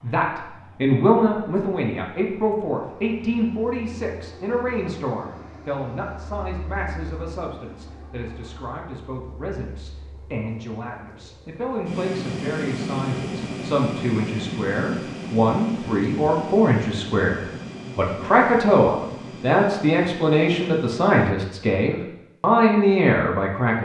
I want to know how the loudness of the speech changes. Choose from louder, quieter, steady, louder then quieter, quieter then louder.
quieter then louder.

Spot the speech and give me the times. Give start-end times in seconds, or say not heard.
0.0-23.7.